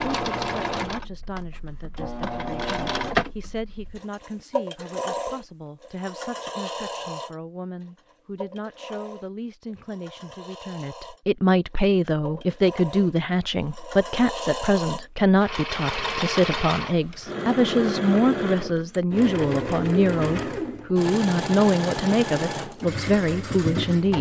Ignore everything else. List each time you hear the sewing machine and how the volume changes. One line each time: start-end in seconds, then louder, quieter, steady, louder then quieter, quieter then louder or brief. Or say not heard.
0.0-24.1 quieter then louder.